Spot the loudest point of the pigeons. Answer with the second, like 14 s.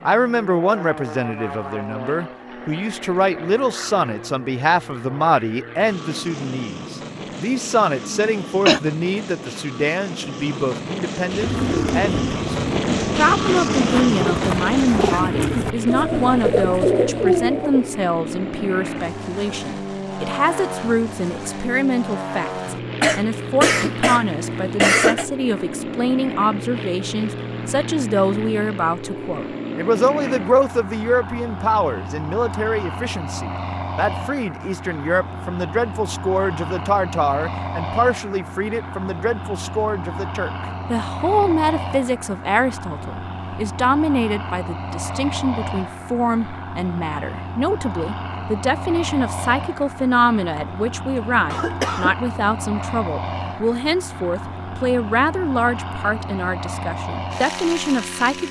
17 s.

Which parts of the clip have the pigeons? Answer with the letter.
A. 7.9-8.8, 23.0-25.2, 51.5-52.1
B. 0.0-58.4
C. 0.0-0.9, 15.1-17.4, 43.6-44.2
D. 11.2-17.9
D.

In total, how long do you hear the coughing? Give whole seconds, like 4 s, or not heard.
4 s.